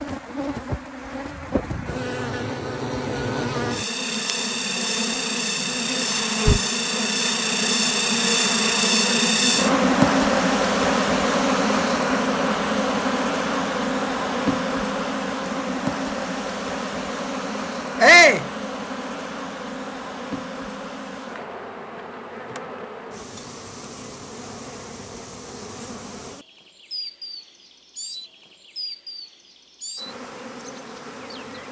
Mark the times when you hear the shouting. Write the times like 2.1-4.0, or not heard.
18.0-18.4.